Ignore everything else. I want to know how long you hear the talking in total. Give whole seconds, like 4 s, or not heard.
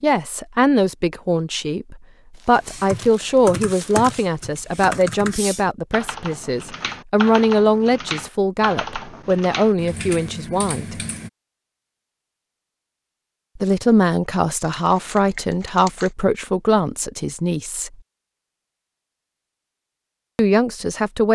16 s.